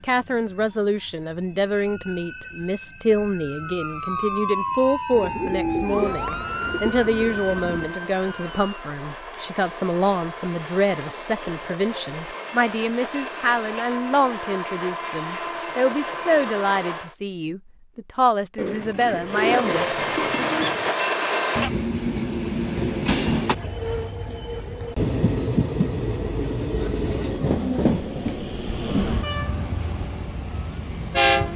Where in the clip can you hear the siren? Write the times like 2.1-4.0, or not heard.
1.8-8.8.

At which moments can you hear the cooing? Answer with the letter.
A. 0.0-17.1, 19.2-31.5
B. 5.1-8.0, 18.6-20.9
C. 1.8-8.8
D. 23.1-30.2
B.